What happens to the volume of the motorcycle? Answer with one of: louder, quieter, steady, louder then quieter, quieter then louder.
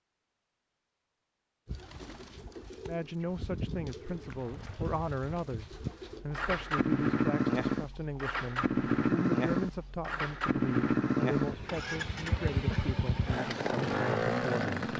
louder.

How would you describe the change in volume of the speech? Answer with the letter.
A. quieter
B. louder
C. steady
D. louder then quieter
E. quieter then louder
C.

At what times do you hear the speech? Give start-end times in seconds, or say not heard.
2.9-14.8.